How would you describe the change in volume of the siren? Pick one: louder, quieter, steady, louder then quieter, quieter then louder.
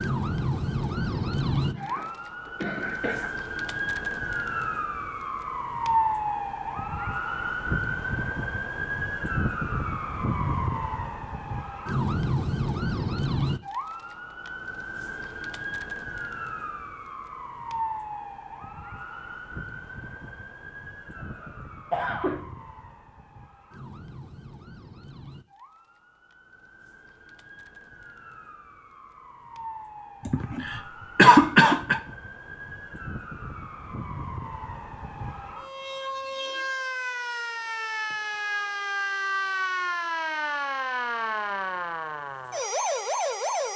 quieter then louder.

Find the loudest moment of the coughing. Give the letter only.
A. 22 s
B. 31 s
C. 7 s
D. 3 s
B.